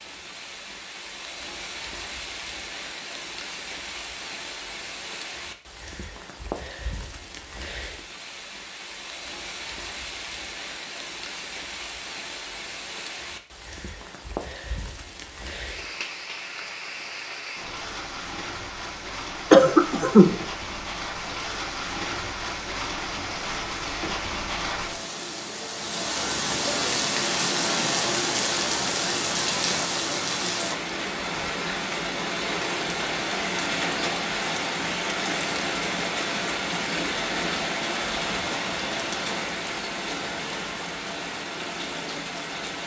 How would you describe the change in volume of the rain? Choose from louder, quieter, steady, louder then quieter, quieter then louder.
louder.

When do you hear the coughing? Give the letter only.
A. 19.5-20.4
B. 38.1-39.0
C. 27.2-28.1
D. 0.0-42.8
A.